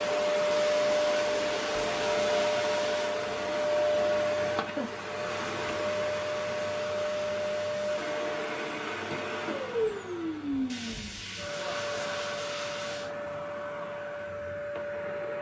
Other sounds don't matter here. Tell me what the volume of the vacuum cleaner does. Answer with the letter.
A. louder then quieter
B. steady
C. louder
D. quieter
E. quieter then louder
D.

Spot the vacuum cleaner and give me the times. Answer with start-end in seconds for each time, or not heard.
0.0-15.3.